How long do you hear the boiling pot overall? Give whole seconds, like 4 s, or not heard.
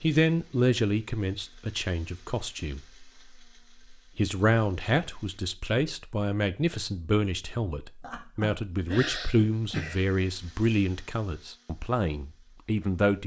not heard.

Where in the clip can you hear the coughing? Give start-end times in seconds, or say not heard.
8.0-10.0.